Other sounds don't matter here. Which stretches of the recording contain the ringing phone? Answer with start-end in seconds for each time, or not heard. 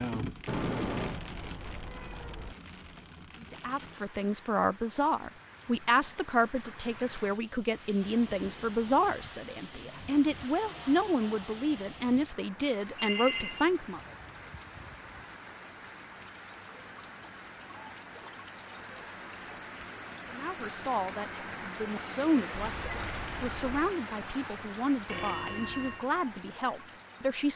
0.5-1.2, 12.9-13.7, 25.1-26.1.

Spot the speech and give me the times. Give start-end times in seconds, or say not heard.
3.5-14.0, 20.3-27.5.